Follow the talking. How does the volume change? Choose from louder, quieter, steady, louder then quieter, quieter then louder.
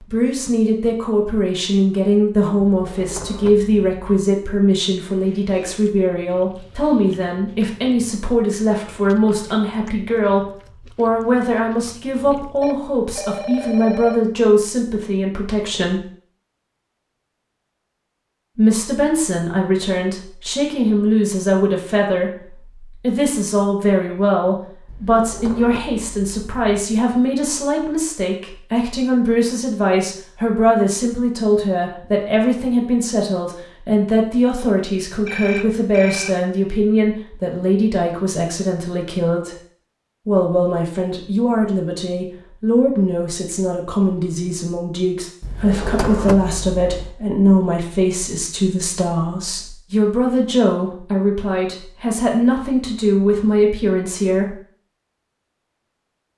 steady.